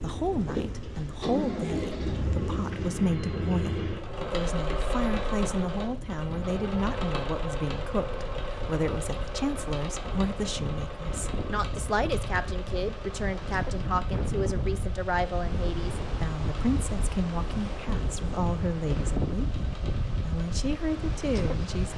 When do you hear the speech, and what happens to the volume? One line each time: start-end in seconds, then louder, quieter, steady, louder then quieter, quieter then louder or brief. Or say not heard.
0.0-21.9 steady.